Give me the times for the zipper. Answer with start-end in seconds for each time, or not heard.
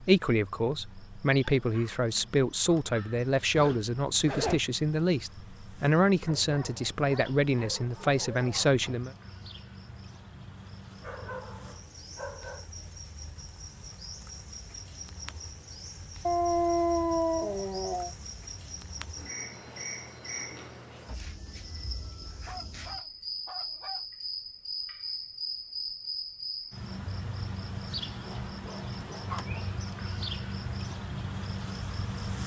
3.5-4.7.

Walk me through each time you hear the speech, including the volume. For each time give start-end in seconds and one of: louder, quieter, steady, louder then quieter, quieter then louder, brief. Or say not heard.
0.0-9.1 steady.